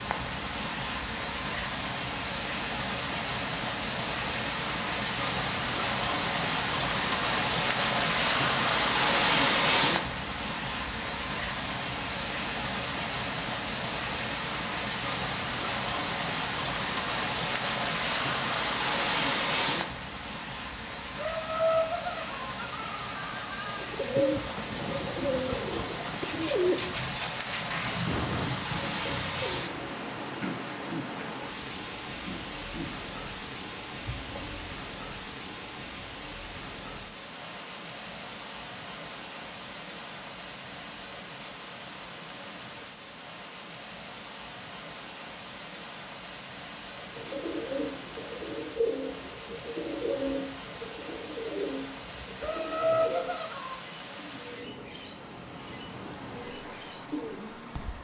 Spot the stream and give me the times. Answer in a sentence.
You can hear the stream from 0.0 to 57.9 s.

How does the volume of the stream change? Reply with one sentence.
The volume of the stream goes down.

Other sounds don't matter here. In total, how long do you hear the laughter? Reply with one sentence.
The laughter can be heard for 4 seconds in total.